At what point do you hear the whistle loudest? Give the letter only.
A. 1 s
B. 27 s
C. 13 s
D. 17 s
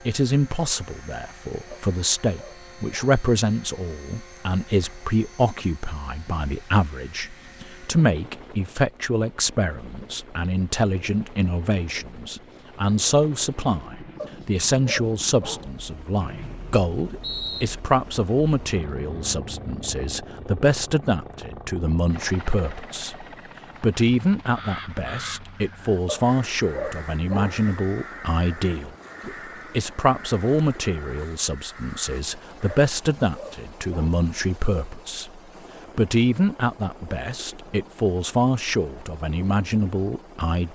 D.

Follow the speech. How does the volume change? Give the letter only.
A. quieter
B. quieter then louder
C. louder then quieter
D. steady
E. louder
D.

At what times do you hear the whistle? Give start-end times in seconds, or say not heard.
16.2-17.6.